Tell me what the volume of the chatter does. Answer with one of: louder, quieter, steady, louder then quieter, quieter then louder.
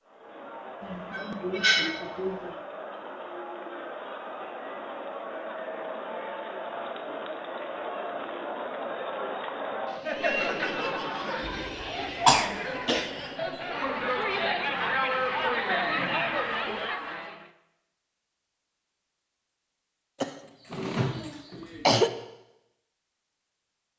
louder.